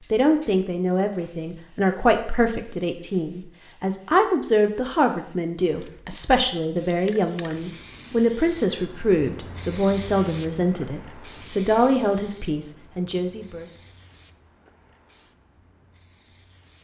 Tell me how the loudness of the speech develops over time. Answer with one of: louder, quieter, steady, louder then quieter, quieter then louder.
steady.